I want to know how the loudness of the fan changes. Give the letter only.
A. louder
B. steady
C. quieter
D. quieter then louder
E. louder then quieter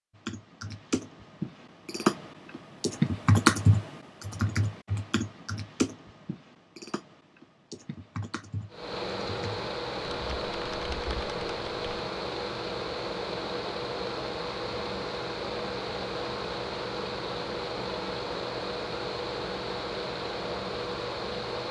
B.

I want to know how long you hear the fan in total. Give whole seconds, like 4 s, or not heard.
13 s.